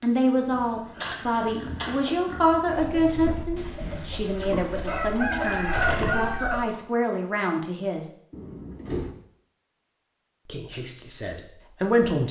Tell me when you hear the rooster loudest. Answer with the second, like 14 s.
6 s.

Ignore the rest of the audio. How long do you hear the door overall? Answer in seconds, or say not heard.
2 s.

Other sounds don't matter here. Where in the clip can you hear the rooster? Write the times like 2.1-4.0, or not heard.
2.8-6.7.